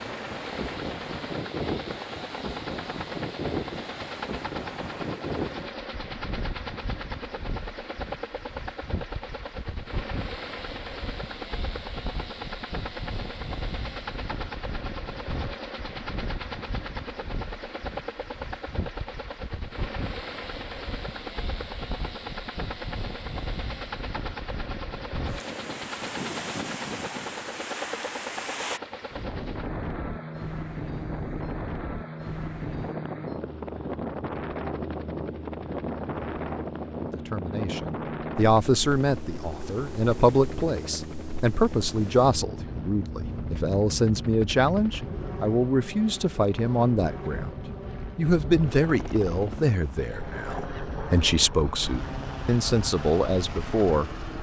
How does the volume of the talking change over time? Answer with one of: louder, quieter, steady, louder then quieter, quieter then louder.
steady.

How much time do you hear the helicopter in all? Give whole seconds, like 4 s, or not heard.
54 s.